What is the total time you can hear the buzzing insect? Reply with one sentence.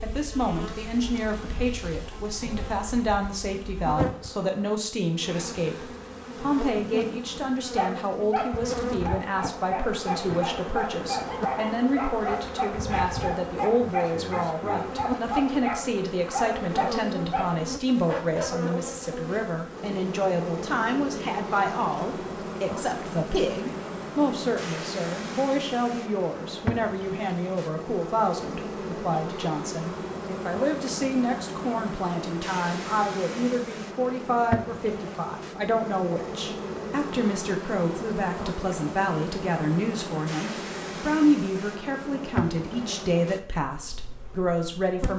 You can hear the buzzing insect for 45 seconds altogether.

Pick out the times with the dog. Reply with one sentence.
You can hear the dog from 7.8 to 18.5 s.